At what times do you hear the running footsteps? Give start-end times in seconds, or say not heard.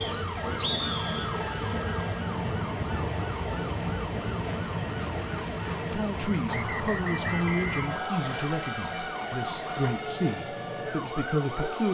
not heard.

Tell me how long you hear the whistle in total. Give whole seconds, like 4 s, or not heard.
3 s.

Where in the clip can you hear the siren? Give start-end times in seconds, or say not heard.
0.0-11.8.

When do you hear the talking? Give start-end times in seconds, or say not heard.
5.9-11.8.